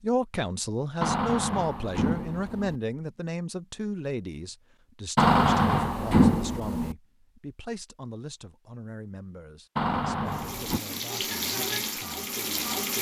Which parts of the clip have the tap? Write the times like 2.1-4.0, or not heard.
10.2-12.9.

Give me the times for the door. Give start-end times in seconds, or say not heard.
1.0-2.8, 5.2-7.0, 9.8-10.8.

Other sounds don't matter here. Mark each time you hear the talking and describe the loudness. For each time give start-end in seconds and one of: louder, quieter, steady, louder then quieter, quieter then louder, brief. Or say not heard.
0.0-12.7 quieter.